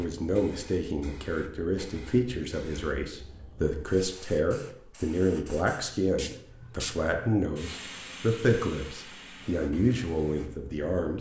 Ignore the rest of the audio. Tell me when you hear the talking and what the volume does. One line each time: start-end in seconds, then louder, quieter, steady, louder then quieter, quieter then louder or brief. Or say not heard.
0.0-11.1 steady.